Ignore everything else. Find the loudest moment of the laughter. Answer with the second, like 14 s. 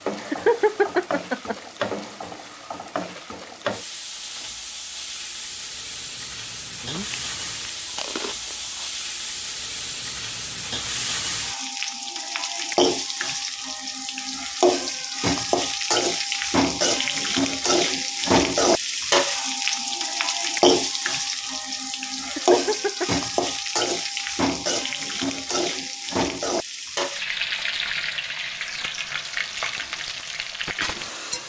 1 s.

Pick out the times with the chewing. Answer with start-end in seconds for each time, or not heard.
6.8-8.9.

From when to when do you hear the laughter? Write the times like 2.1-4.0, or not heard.
0.2-1.6, 22.2-23.2.